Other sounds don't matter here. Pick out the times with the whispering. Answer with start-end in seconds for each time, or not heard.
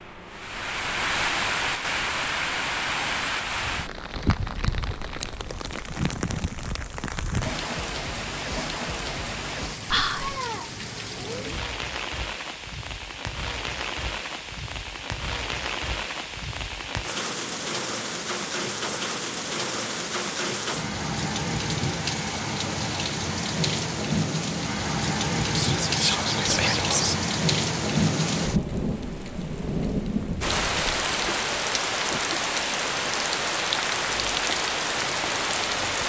9.9-10.4, 25.6-27.2.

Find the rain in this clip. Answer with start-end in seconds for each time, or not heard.
0.0-36.0.